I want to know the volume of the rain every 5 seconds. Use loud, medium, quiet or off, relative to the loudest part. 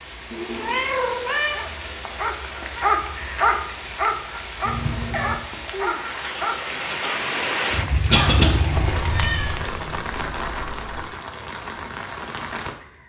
medium, loud, medium.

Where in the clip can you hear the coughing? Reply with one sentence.
The coughing can be heard from 8.1 to 8.5 s.